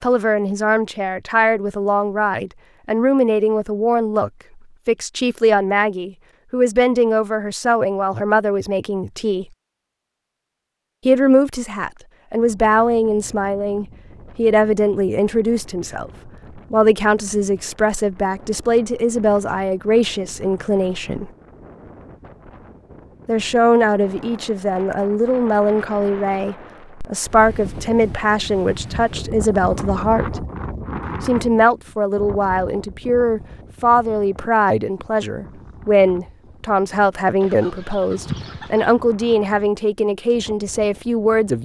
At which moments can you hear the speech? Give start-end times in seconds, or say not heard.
0.0-9.4, 11.1-21.3, 23.2-30.4, 31.2-41.6.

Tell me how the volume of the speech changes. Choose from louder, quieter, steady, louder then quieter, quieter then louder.
steady.